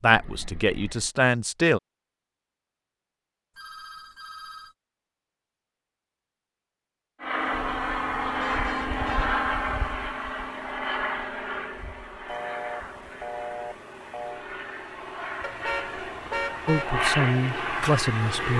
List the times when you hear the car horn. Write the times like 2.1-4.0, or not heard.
0.1-1.1, 7.5-9.6, 15.4-17.1.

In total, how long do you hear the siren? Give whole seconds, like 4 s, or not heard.
not heard.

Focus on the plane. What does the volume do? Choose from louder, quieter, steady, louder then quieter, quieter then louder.
quieter then louder.